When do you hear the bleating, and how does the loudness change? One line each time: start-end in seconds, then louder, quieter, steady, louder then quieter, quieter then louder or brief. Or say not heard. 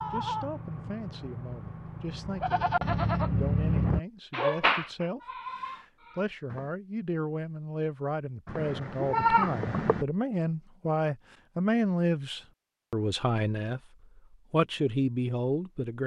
0.0-6.7 louder then quieter
8.4-10.1 brief.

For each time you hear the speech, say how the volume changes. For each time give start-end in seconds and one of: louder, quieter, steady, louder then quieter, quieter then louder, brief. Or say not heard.
0.1-16.0 louder.